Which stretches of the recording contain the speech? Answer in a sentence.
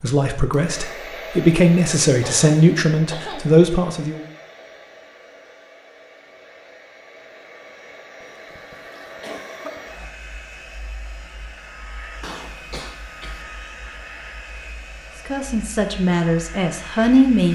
The speech can be heard from 0.0 to 4.2 s and from 15.2 to 17.4 s.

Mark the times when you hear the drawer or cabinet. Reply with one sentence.
You can't hear the drawer or cabinet here.